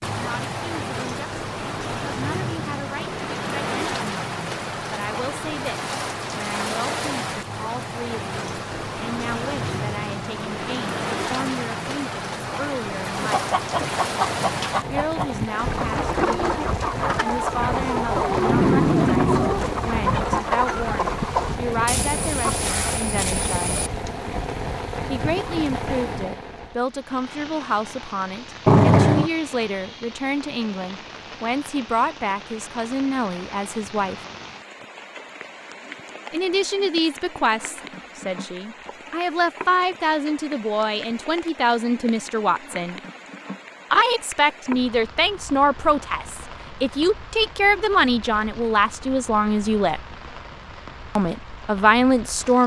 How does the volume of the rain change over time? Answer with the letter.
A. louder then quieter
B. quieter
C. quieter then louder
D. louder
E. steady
B.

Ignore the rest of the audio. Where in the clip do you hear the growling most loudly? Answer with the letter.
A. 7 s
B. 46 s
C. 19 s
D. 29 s
D.